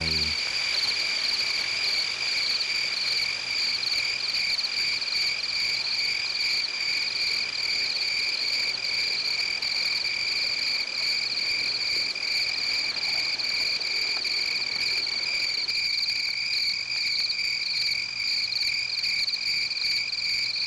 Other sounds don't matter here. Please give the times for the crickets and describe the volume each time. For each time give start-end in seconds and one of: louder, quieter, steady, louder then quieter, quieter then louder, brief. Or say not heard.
0.0-20.6 steady.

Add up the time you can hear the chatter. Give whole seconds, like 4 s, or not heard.
not heard.